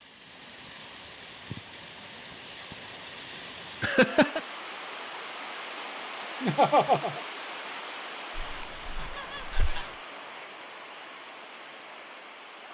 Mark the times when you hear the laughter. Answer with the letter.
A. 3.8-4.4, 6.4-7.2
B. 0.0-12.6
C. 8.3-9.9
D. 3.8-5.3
A.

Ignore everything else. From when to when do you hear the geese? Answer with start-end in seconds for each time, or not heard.
8.3-9.9.